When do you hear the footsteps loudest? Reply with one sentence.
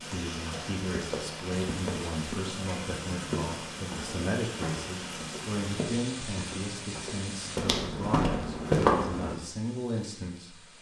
The loudest moment of the footsteps is at 9 seconds.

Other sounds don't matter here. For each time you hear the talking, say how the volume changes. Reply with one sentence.
The talking can be heard from 0.0 to 10.7 s, at a steady volume.